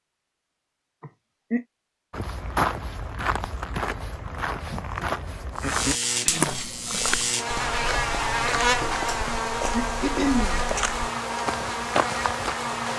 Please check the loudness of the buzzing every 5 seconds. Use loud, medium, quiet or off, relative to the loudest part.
off, loud, loud.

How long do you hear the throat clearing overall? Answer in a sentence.
You can hear the throat clearing for 3 seconds altogether.